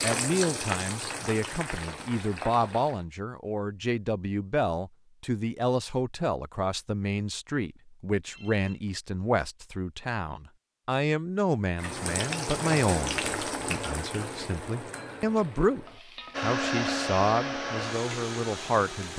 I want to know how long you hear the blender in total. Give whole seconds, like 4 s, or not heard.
3 s.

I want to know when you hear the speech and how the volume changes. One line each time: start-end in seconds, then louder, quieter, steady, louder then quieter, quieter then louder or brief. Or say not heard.
0.0-19.1 steady.